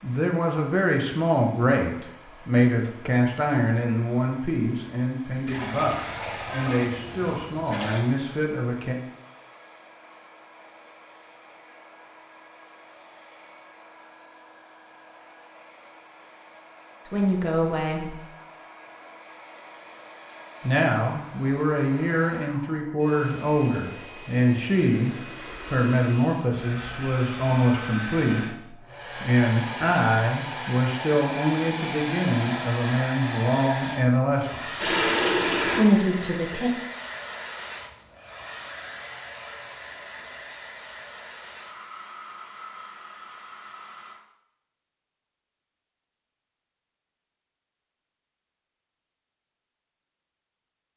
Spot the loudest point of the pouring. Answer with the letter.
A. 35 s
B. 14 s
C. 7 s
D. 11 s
A.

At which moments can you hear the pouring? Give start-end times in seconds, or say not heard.
5.5-8.1, 34.8-35.9.